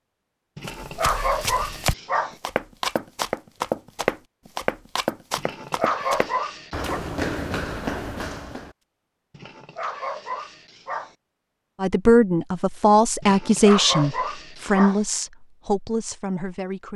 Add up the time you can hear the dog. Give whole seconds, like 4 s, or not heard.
7 s.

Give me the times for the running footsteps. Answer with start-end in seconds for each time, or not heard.
0.7-8.7.